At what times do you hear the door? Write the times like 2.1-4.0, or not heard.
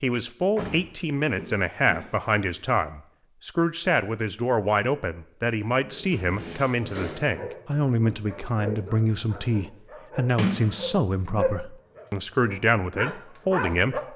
0.6-2.3, 5.9-7.3, 10.3-11.6.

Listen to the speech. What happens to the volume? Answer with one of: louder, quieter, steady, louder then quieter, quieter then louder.
steady.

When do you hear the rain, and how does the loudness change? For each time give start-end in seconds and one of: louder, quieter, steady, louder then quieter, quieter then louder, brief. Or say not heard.
not heard.